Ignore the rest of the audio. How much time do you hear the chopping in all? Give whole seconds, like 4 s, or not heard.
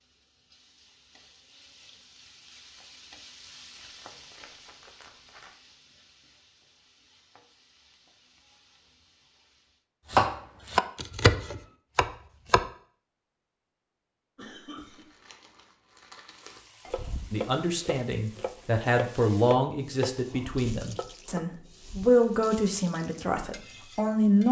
8 s.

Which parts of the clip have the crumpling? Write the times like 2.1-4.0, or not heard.
3.8-5.5, 14.8-16.6.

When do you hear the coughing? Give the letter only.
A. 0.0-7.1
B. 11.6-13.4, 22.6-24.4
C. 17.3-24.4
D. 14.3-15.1
D.